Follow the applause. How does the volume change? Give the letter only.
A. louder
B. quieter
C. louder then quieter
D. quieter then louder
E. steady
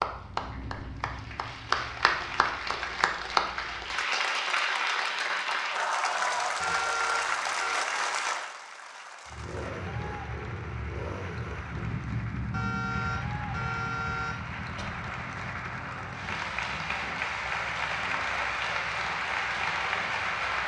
D.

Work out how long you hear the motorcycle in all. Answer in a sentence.
You can hear the motorcycle for 14 seconds altogether.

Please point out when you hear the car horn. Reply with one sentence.
The car horn can be heard from 6.6 to 7.8 s and from 12.5 to 14.9 s.